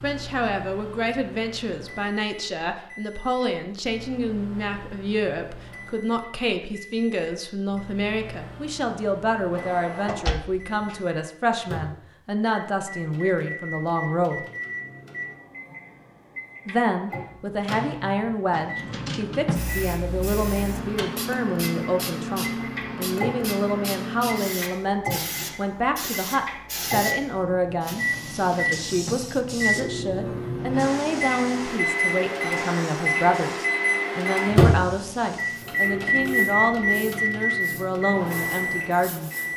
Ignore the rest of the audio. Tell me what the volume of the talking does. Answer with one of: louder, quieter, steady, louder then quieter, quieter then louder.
steady.